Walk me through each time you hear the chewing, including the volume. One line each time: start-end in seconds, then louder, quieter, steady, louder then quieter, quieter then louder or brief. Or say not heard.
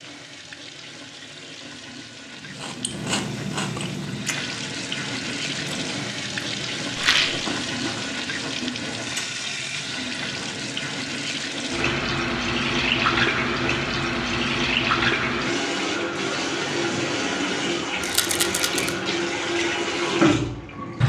2.5-10.9 quieter.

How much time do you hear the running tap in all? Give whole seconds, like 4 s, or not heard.
21 s.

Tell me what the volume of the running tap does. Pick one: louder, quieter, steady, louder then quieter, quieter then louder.
louder.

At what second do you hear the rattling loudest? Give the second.
7 s.